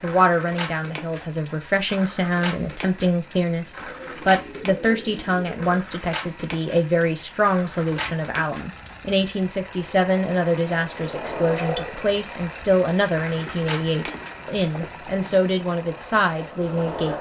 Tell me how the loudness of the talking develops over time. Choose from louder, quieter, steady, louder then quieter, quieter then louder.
steady.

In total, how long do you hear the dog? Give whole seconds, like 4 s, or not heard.
not heard.